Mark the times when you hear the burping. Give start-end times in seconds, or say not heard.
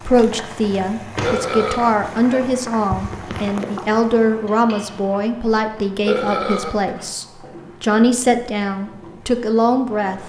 1.2-2.4, 6.0-7.0.